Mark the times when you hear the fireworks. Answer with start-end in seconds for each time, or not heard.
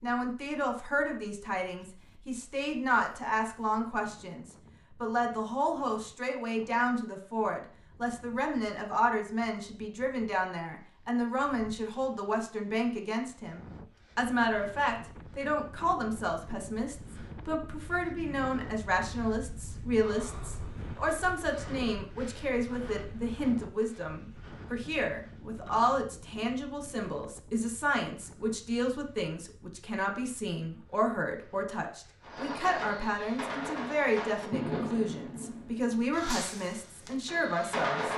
32.2-38.1.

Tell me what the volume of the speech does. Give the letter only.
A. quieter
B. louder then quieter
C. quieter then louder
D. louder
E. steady
E.